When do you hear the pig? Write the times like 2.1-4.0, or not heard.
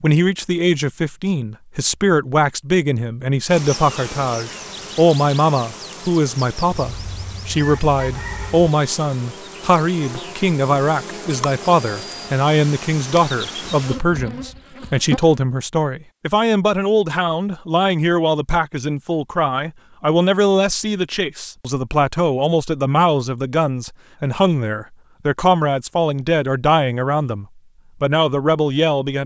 not heard.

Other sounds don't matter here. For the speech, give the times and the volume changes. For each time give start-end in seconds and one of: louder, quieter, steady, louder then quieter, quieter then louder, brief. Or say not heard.
0.0-29.2 steady.